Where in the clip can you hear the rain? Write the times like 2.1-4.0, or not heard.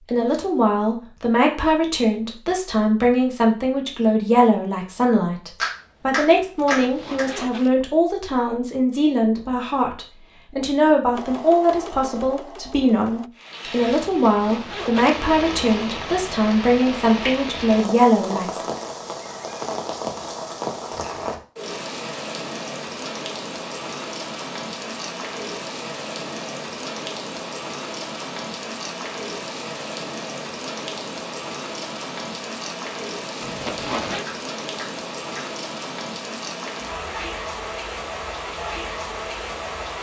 13.3-39.9.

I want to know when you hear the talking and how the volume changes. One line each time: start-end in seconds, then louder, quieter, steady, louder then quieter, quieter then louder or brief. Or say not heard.
0.0-18.6 steady.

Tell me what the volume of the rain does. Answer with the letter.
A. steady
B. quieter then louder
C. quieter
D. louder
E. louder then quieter
A.